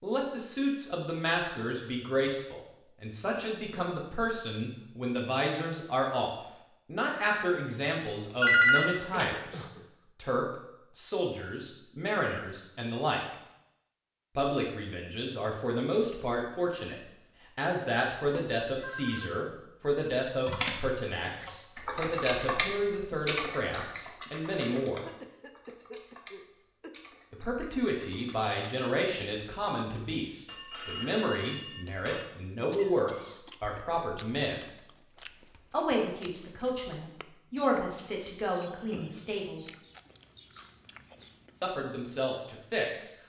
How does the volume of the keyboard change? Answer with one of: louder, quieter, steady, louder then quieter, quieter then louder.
quieter.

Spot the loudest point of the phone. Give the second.
9 s.